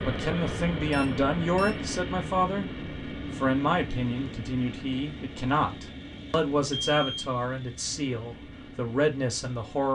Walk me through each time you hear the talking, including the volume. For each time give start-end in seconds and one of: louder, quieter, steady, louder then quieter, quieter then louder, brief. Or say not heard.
0.0-9.9 steady.